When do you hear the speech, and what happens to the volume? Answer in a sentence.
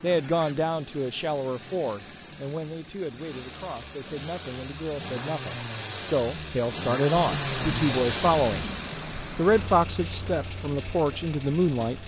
The speech can be heard from 0.0 to 12.0 s, getting quieter then louder.